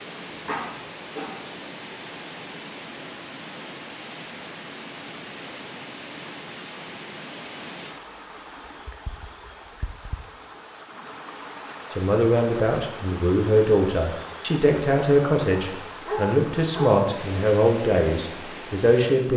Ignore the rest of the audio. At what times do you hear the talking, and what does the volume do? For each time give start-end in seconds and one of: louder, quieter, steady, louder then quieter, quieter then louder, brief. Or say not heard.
11.9-19.3 steady.